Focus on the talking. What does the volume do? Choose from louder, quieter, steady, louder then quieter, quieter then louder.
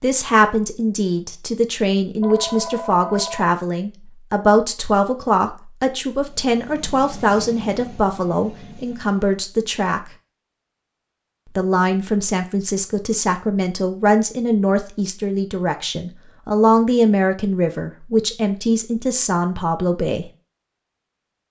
steady.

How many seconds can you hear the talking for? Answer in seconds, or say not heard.
19 s.